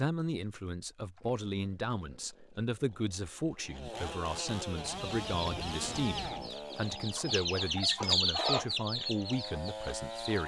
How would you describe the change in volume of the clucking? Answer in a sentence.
The volume of the clucking goes up, then down.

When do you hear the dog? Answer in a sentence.
The dog can't be heard in this clip.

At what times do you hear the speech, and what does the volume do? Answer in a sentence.
You can hear the speech from 0.0 to 10.4 s, at a steady volume.